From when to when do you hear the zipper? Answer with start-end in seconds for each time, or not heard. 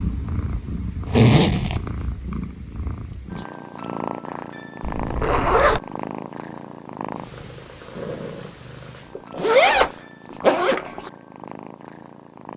1.1-1.8, 4.8-5.8, 9.2-11.1.